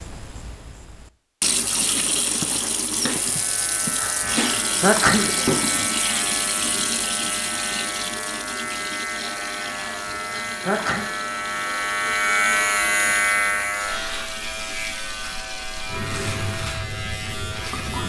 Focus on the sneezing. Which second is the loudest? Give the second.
5 s.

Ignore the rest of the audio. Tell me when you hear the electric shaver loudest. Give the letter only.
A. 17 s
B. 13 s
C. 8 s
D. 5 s
B.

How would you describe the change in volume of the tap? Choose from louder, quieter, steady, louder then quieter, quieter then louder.
quieter.